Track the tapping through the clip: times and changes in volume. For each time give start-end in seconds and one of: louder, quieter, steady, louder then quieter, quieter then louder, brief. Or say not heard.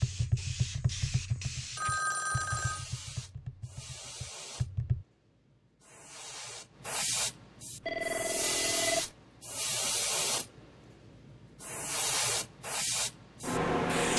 0.0-5.0 quieter then louder.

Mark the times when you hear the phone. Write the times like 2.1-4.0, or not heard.
1.8-2.9, 7.8-9.1.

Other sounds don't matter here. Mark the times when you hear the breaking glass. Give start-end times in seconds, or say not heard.
not heard.